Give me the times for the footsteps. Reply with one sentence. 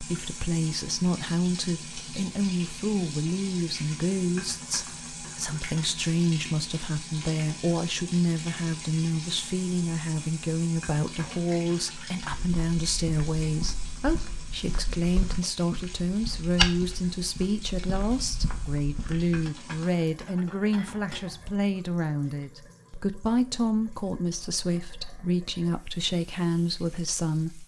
The footsteps can be heard from 12.2 to 19.4 s.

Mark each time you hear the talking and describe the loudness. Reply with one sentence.
You can hear the talking from 0.0 to 27.6 s, at a steady volume.